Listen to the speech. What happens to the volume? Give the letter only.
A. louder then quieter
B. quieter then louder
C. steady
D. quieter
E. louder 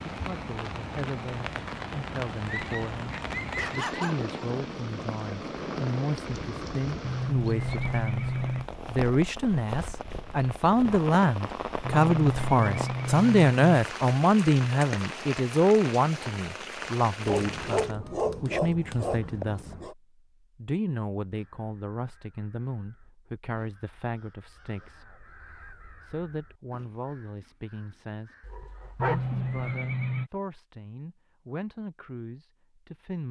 A.